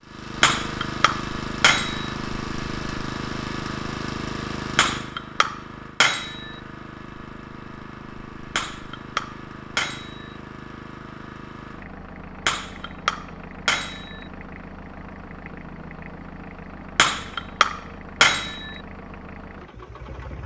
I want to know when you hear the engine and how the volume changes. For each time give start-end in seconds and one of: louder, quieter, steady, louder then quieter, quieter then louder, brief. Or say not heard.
0.0-20.4 quieter.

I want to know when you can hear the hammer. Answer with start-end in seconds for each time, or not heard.
0.4-2.1, 4.8-6.5, 8.6-10.3, 12.4-14.2, 16.9-18.8.